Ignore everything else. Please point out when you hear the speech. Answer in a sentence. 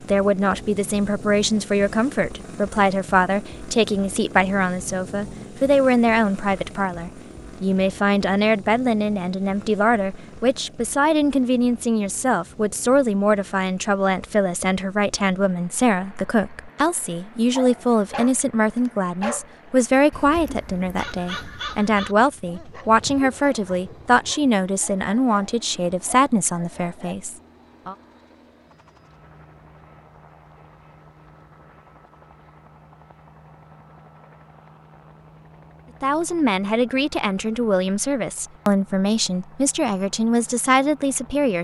You can hear the speech from 0.1 to 27.9 s and from 36.0 to 41.5 s.